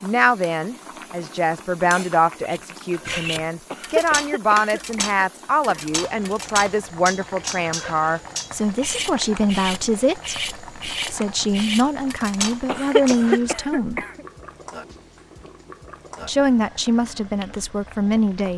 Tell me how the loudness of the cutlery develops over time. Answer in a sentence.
The volume of the cutlery stays about the same.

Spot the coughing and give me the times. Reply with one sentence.
The coughing can be heard from 3.7 to 6.0 s and from 12.7 to 14.2 s.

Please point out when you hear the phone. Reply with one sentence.
The phone can't be heard in this clip.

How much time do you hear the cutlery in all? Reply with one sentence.
The cutlery can be heard for 11 seconds in total.